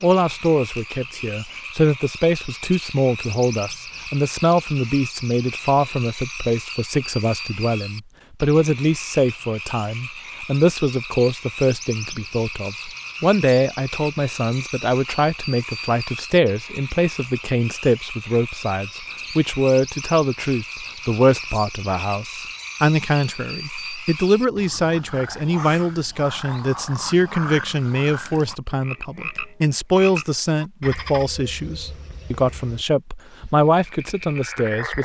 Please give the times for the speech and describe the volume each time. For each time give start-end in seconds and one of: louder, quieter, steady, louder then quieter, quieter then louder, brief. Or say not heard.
0.0-35.0 steady.